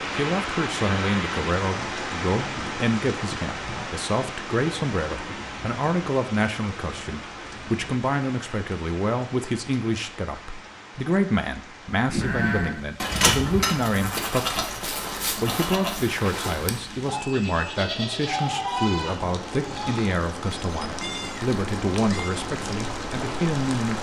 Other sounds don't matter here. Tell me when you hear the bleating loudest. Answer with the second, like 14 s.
13 s.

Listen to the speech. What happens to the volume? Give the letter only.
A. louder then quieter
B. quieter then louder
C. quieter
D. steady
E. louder
D.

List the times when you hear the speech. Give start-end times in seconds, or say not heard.
0.1-23.9.